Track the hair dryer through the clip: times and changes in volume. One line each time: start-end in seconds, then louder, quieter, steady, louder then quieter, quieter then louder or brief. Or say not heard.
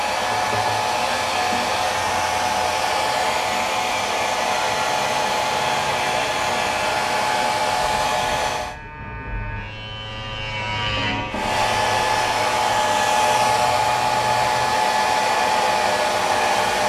0.0-8.8 steady
11.3-16.8 steady.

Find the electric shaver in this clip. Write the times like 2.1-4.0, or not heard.
4.5-14.8.